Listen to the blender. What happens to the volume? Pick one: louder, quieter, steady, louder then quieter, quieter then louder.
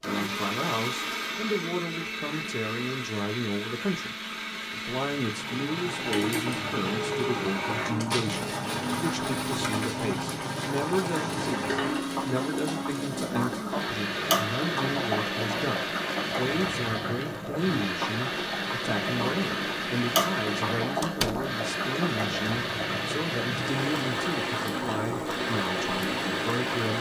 steady.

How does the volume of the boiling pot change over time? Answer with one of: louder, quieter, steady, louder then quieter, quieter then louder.
steady.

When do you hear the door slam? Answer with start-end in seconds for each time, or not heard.
21.0-21.5.